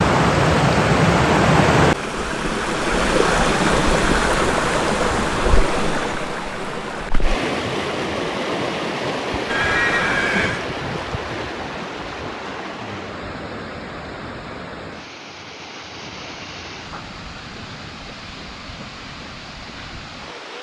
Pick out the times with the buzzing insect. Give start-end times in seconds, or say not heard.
not heard.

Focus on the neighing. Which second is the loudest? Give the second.
10 s.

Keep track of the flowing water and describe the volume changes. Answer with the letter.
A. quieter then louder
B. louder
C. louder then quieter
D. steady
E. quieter
E.